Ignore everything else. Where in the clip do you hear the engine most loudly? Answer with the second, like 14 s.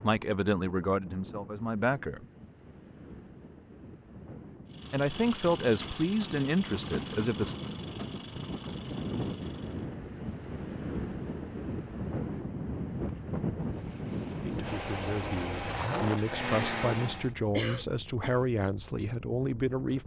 16 s.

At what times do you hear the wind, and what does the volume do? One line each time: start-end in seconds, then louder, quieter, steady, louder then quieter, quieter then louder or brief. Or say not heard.
0.0-20.0 louder then quieter.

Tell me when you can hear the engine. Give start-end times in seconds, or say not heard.
4.7-9.9, 13.6-17.4.